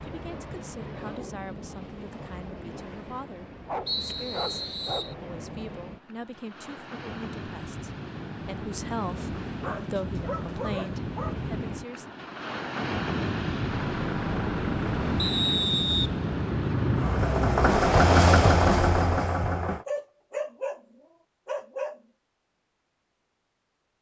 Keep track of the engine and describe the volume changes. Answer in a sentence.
The loudness of the engine goes up.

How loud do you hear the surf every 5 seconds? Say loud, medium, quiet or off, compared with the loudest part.
medium, medium, loud, loud, off.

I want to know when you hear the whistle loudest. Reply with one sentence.
The loudest moment of the whistle is at 16 seconds.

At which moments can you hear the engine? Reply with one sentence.
You can hear the engine from 13.6 to 19.9 s.